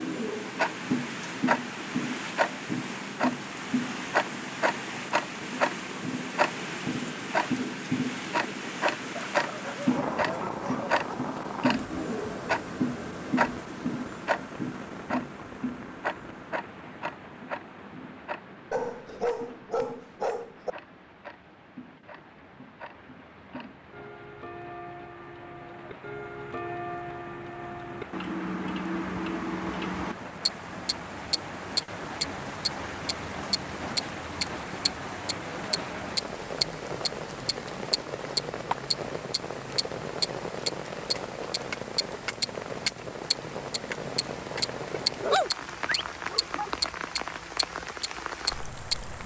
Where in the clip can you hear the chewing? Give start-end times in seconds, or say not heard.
not heard.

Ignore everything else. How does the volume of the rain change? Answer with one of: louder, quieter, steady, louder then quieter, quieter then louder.
quieter then louder.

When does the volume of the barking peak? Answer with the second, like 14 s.
45 s.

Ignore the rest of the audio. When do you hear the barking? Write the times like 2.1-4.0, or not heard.
9.2-11.2, 18.7-20.7, 45.0-46.7.